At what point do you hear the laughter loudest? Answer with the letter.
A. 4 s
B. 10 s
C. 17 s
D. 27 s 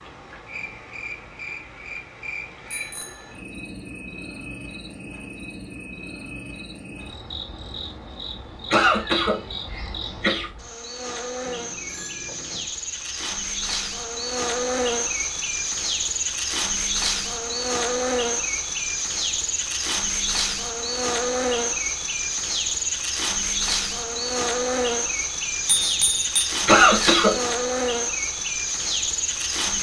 D.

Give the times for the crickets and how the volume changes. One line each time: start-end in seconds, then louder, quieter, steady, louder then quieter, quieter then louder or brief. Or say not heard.
0.0-29.7 louder.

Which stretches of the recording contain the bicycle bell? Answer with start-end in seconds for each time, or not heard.
2.7-3.4, 11.4-12.7, 25.6-26.5.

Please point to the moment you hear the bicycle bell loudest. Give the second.
26 s.